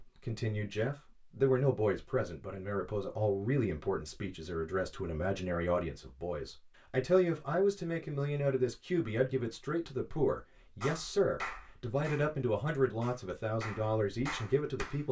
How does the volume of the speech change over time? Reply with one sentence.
The volume of the speech stays about the same.